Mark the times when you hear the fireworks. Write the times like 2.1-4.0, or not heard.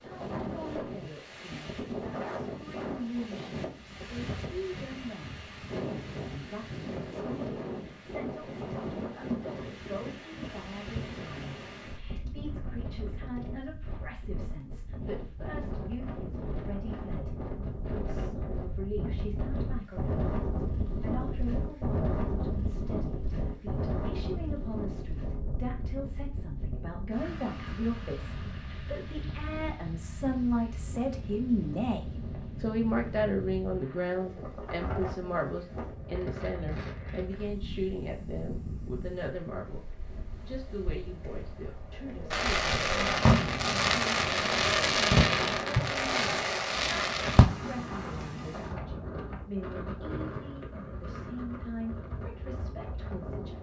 42.3-47.5.